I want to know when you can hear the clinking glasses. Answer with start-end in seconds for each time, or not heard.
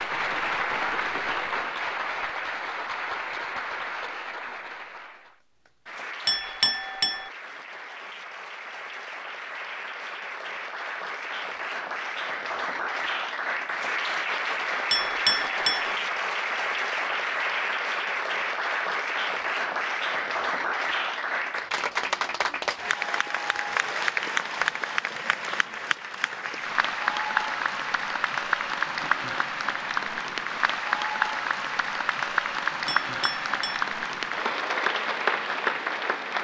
6.2-7.3, 14.9-15.9, 32.9-33.9.